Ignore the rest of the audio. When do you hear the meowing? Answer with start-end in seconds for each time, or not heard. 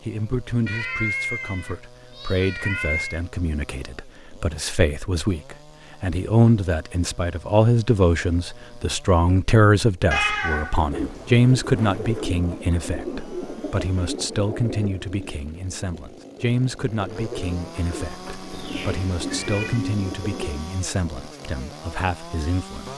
0.7-3.2, 10.1-11.4, 18.5-19.9.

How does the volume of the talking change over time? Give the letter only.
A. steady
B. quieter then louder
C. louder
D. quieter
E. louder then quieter
E.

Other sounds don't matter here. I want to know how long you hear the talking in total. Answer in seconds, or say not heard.
23 s.